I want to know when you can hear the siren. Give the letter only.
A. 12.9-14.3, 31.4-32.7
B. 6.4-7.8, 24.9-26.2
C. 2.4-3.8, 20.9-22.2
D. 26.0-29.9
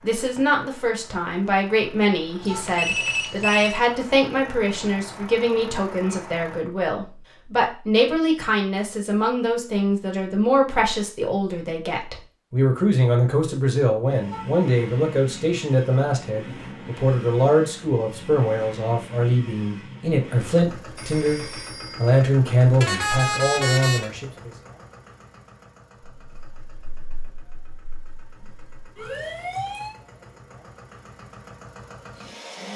D.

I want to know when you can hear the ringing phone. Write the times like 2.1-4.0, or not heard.
2.4-3.8, 20.9-22.2.